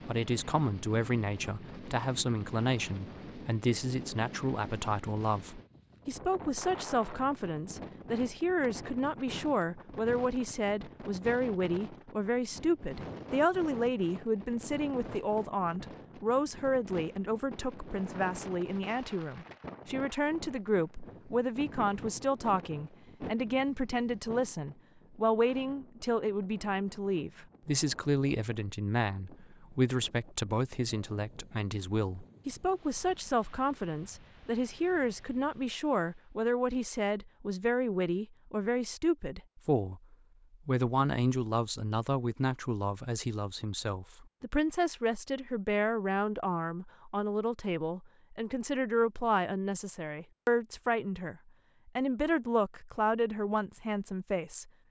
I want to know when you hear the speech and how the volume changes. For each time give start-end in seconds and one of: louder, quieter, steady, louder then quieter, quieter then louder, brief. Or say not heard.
0.1-54.7 steady.